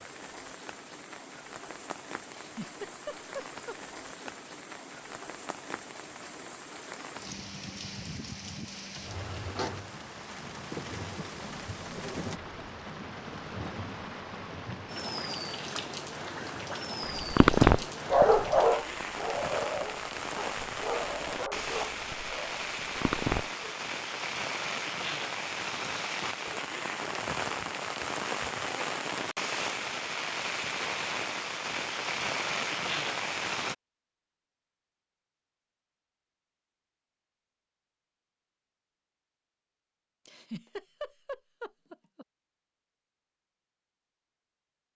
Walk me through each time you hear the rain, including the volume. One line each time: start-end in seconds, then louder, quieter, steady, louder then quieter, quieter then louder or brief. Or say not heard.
0.0-33.8 louder.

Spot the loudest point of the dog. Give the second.
18 s.